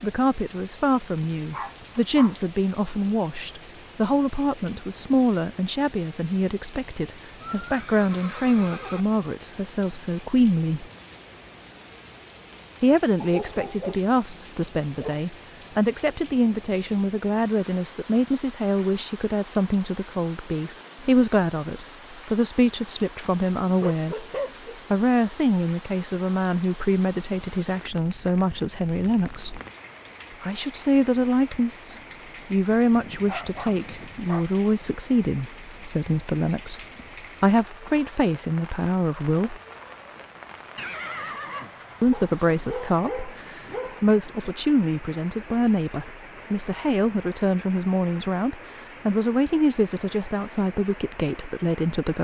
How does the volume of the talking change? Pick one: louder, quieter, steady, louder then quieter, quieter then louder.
steady.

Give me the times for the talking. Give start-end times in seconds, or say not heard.
0.0-10.8, 12.8-24.2, 24.9-29.6, 30.4-39.5, 42.0-52.1.